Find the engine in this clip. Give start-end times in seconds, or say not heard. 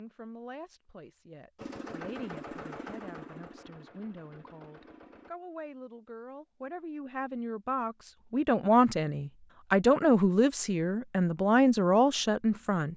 1.6-5.3.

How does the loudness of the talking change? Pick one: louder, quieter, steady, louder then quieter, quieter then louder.
louder.